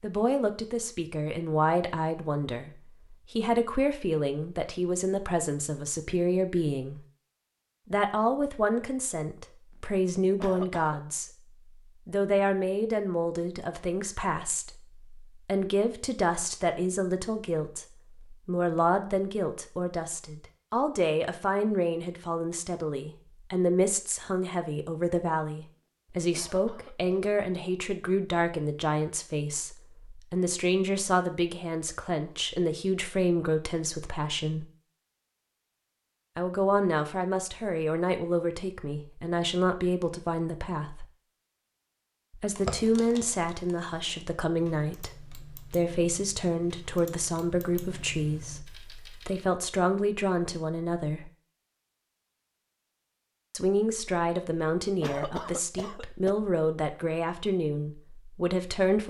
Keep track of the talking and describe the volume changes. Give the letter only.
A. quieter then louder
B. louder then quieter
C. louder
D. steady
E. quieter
D.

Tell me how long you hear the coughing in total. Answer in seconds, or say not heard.
3 s.